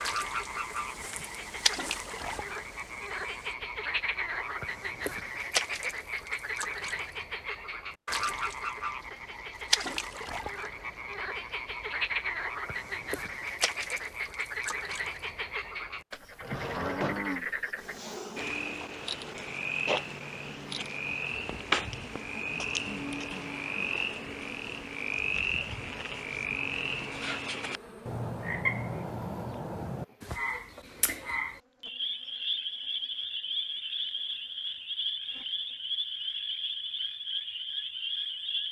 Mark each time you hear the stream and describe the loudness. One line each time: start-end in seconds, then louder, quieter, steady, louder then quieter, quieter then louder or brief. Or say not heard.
not heard.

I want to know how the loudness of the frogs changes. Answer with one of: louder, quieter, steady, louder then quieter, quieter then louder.
steady.